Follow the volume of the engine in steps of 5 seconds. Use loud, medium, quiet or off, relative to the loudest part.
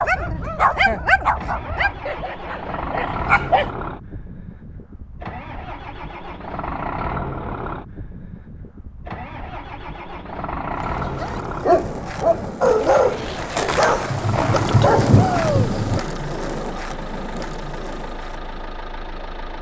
loud, loud, loud, medium.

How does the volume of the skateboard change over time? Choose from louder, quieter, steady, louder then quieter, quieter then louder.
louder then quieter.